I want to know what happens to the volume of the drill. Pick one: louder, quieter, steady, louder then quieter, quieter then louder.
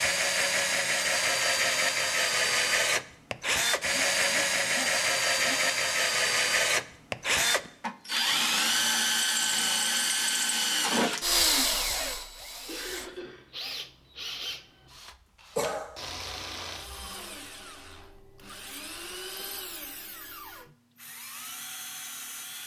quieter.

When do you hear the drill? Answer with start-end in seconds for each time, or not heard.
0.0-22.6.